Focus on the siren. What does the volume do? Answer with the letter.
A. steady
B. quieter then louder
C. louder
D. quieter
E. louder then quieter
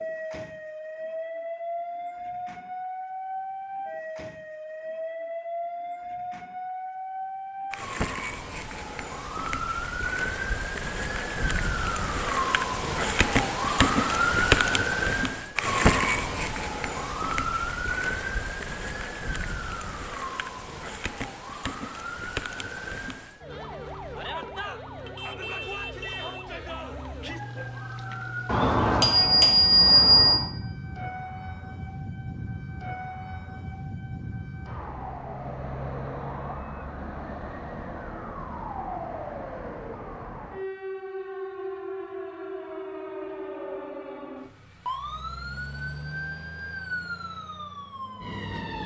E.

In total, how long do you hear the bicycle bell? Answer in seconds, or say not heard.
2 s.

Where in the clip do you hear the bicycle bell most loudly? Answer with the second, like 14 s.
30 s.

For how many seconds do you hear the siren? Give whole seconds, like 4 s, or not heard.
49 s.